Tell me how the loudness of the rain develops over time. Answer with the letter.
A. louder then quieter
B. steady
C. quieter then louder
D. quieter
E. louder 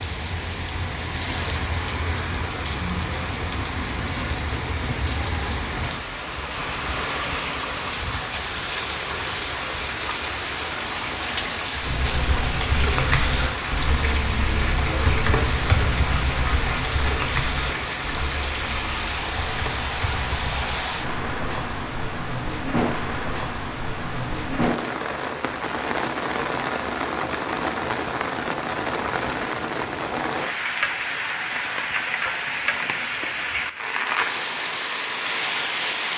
B.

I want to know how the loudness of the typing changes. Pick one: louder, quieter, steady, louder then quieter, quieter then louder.
quieter.